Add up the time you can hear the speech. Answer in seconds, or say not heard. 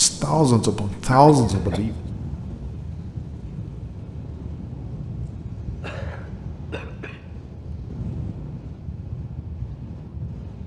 2 s.